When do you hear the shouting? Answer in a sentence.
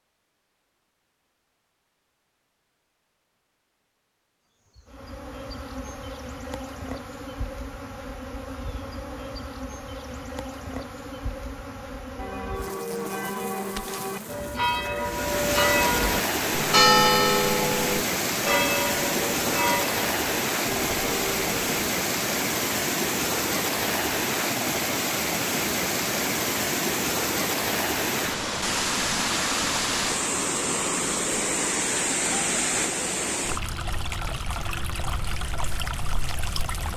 You can't hear the shouting here.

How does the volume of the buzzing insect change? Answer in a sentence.
The loudness of the buzzing insect stays about the same.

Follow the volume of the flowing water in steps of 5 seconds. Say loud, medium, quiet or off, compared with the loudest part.
off, off, off, loud, loud, loud, loud, medium.